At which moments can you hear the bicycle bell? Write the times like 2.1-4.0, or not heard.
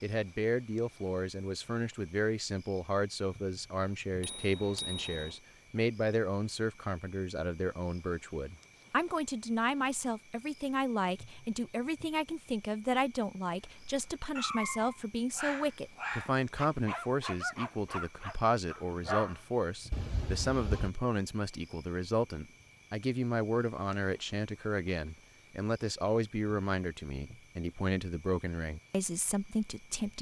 4.2-5.4, 19.9-20.9.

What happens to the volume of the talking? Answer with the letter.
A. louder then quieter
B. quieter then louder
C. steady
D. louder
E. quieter
C.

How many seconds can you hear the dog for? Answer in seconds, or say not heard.
6 s.